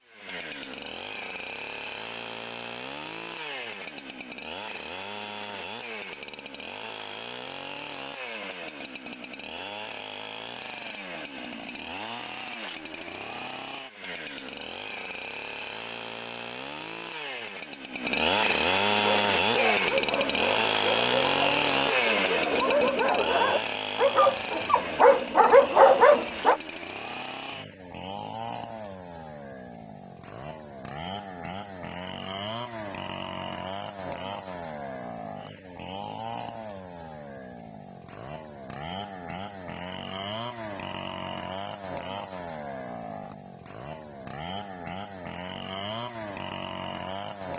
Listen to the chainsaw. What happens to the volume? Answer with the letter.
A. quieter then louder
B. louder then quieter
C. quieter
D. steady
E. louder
B.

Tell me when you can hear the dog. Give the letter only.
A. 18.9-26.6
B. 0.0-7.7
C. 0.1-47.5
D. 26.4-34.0
A.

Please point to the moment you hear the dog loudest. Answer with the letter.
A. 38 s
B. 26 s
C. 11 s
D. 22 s
B.